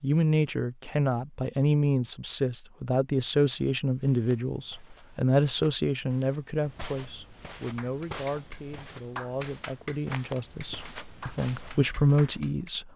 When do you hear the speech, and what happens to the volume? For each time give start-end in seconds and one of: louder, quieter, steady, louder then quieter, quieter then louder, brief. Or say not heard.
0.0-12.9 quieter then louder.